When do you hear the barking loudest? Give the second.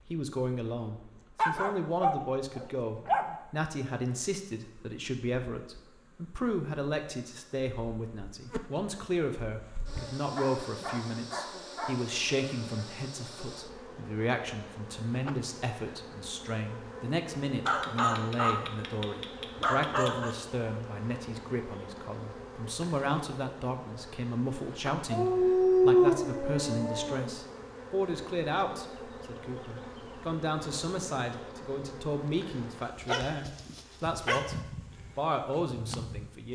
26 s.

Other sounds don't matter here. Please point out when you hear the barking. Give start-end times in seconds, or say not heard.
1.4-3.4, 10.3-11.9, 17.6-20.4, 25.1-27.4, 33.0-34.4.